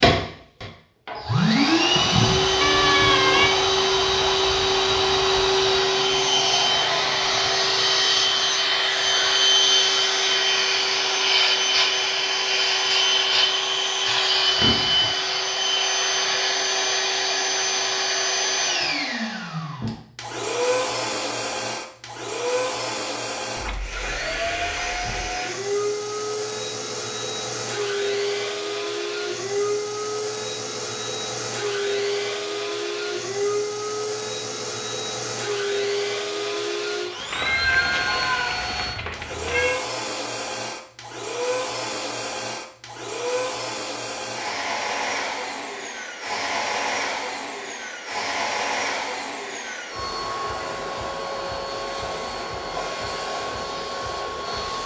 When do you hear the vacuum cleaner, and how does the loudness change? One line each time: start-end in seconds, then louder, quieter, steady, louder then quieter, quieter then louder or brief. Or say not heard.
0.0-54.8 quieter.